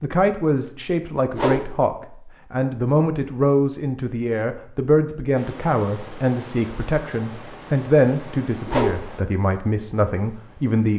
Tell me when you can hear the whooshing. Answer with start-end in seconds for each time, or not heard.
1.3-1.9, 8.7-9.2.